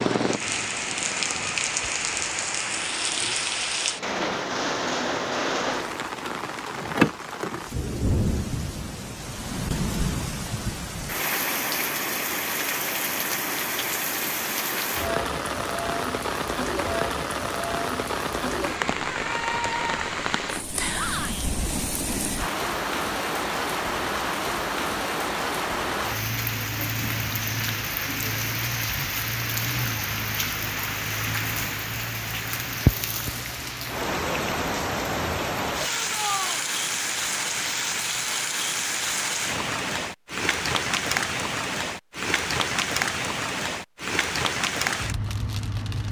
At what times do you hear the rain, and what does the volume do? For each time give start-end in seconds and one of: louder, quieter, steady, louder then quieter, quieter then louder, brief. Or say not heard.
0.1-46.0 steady.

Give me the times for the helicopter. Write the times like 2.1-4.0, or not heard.
0.0-1.5.